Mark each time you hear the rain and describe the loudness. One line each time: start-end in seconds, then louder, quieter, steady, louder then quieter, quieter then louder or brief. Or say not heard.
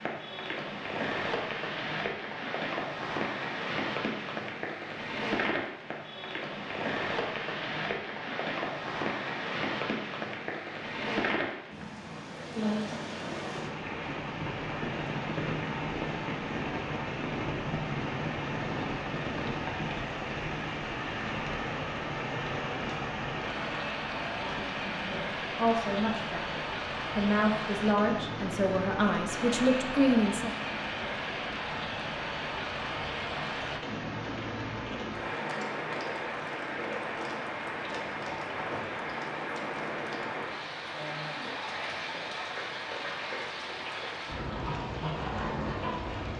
0.0-46.3 steady.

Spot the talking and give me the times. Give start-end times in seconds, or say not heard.
24.4-30.5.